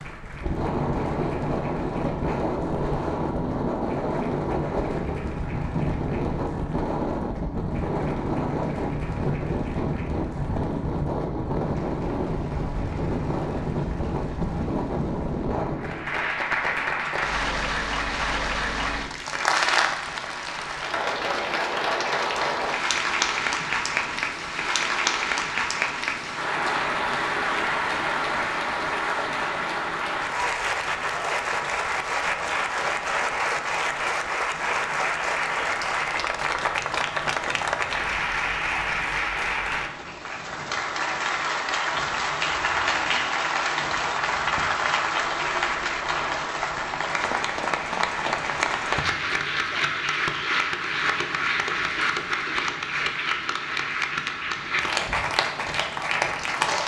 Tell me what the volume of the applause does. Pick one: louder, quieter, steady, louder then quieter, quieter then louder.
louder.